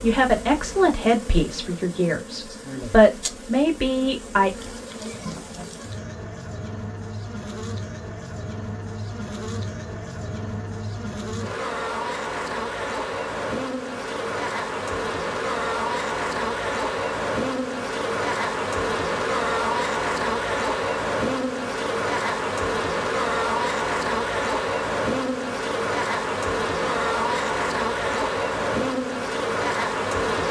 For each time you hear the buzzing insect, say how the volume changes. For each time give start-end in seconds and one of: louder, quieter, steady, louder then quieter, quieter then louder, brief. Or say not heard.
0.0-30.4 louder.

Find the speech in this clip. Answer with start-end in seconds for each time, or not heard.
0.0-4.5.